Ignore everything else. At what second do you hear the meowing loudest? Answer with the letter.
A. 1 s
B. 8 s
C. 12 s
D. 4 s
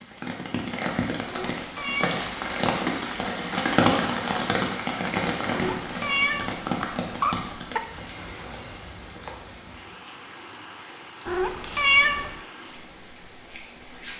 C.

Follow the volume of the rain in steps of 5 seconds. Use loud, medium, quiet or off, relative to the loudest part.
loud, medium, quiet.